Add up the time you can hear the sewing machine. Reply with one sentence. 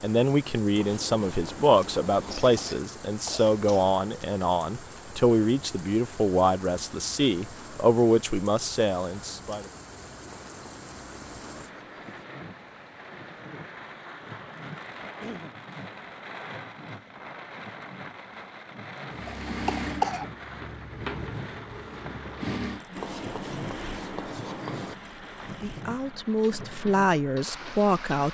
You can hear the sewing machine for 9 seconds altogether.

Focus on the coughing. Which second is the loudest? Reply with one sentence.
The volume of the coughing peaks at 20 seconds.